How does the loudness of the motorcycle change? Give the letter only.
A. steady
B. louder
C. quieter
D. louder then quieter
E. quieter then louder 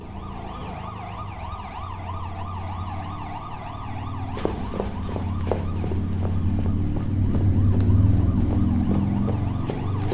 B.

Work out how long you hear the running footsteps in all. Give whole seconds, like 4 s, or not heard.
6 s.